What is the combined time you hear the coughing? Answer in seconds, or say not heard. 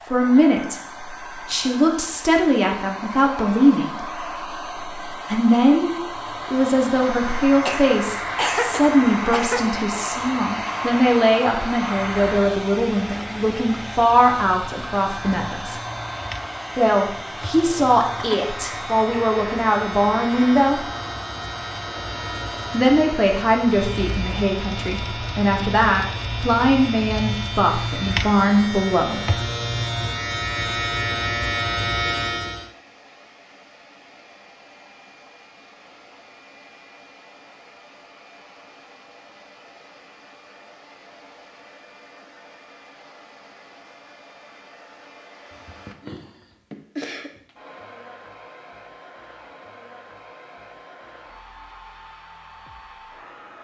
4 s.